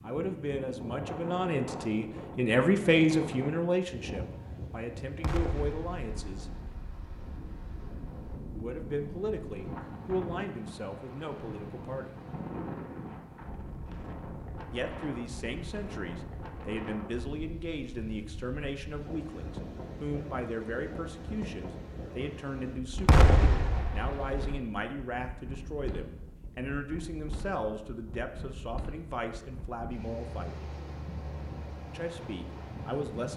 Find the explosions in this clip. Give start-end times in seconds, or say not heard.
5.2-6.7, 23.1-24.6.